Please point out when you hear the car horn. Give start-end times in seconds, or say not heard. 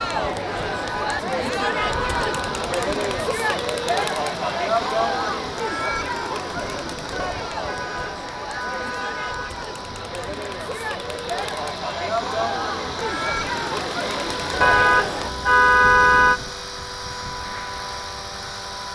0.7-2.6, 7.7-9.7, 14.6-16.4.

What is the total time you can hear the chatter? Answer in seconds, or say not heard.
15 s.